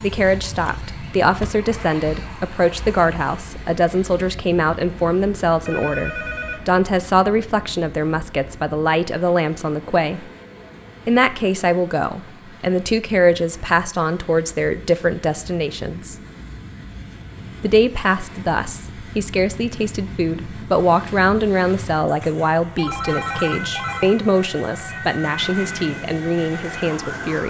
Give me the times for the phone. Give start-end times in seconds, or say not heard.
5.7-6.8, 22.8-24.1.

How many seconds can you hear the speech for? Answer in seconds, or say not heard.
25 s.